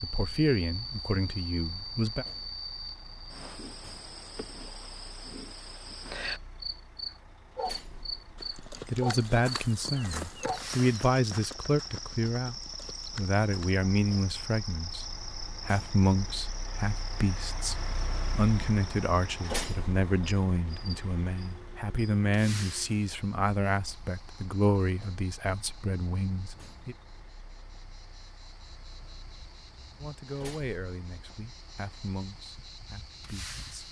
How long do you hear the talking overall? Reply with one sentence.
The talking can be heard for 24 seconds in total.